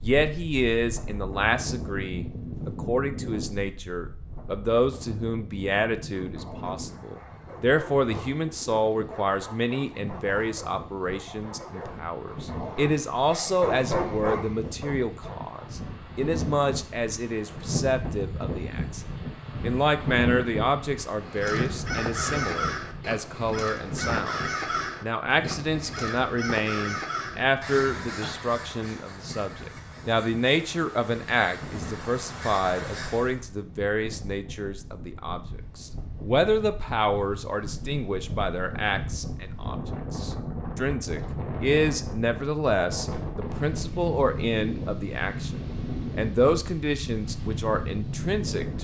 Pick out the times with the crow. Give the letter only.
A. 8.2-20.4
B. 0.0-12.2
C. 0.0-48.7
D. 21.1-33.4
D.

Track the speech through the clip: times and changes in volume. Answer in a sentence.
You can hear the speech from 0.0 to 48.7 s, at a steady volume.